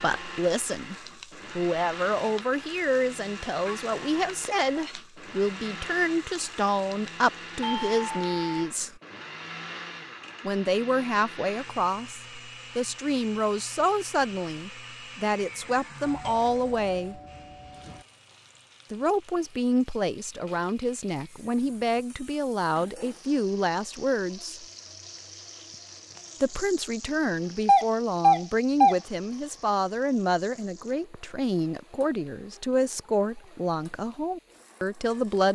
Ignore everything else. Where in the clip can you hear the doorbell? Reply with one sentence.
You can hear the doorbell from 7.6 to 8.7 s, from 16.0 to 18.1 s and from 27.6 to 28.9 s.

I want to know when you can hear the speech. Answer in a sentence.
You can hear the speech from 0.0 to 0.9 s, from 1.6 to 9.0 s, from 10.4 to 17.2 s, from 18.9 to 24.6 s and from 26.4 to 35.4 s.